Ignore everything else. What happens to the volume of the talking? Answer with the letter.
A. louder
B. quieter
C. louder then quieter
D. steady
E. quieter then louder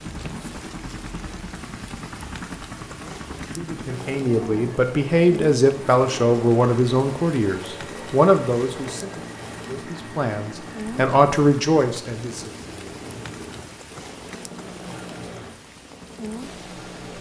E.